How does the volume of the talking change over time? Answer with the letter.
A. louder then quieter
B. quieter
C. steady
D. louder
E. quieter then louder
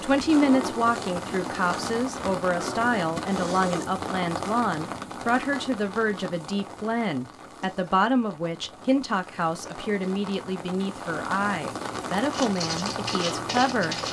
C.